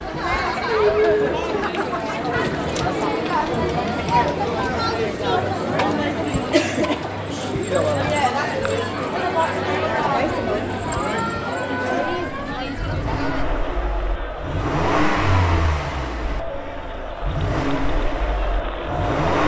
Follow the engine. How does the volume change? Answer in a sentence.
The loudness of the engine goes up, then down.